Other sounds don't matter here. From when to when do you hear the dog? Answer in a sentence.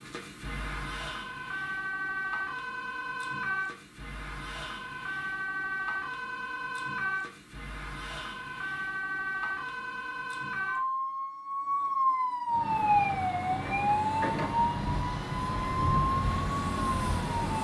You can't hear the dog here.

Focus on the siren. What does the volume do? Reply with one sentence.
The volume of the siren goes up.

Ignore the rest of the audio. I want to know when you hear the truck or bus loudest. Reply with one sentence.
The loudest moment of the truck or bus is at 16 seconds.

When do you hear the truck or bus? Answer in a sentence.
You can hear the truck or bus from 12.4 to 17.5 s.